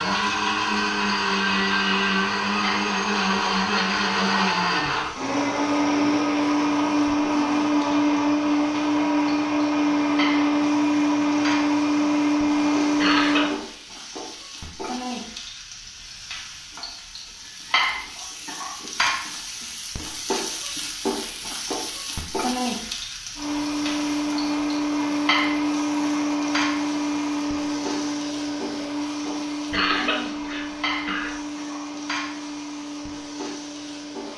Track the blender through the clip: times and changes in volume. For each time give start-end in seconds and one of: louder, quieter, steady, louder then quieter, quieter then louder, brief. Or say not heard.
0.0-13.6 steady
23.4-34.3 quieter.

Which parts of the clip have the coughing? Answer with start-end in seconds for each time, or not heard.
13.0-13.5, 29.7-31.4.